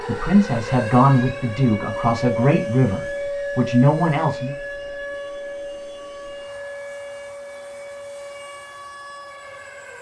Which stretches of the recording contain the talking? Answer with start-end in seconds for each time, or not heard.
0.1-4.5.